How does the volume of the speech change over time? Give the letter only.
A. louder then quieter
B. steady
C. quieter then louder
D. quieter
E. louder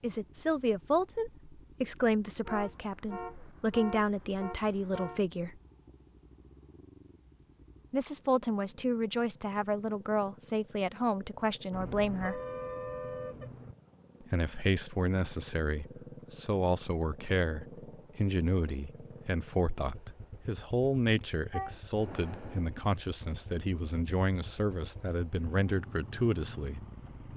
B.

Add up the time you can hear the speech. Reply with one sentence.
The speech can be heard for 23 seconds in total.